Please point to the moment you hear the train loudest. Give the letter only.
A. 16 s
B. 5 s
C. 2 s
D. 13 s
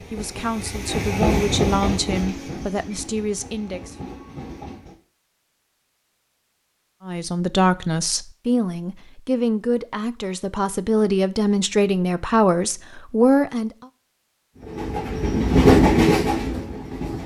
A.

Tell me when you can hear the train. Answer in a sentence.
You can hear the train from 0.0 to 5.0 s and from 14.6 to 17.2 s.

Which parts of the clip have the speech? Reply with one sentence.
You can hear the speech from 0.0 to 4.0 s and from 7.0 to 13.7 s.